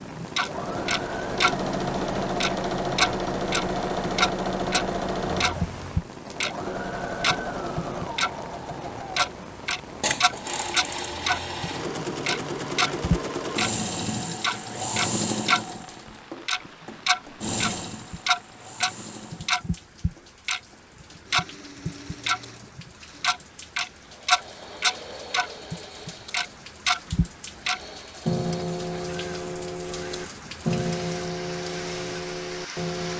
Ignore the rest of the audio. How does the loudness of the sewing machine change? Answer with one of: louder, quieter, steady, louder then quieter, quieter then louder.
quieter.